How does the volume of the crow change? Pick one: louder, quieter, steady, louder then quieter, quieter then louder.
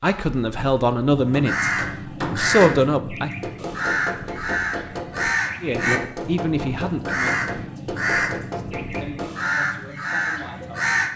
steady.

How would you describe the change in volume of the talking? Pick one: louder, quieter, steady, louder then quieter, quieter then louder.
quieter.